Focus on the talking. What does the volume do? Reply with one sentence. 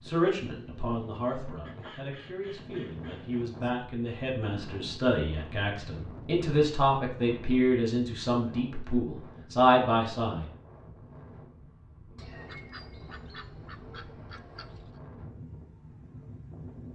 The loudness of the talking goes up.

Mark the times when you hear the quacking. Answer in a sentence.
You can hear the quacking from 1.6 to 3.5 s and from 12.2 to 15.0 s.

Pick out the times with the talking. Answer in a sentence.
You can hear the talking from 0.0 to 10.4 s.